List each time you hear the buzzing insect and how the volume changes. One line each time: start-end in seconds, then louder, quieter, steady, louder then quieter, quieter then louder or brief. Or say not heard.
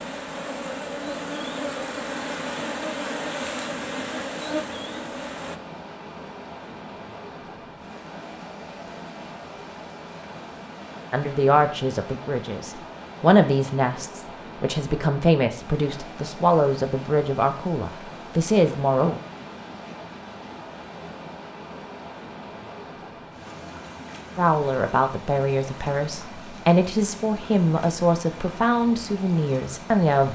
0.0-5.6 steady.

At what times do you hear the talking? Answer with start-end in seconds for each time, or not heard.
11.1-19.2, 24.4-30.2.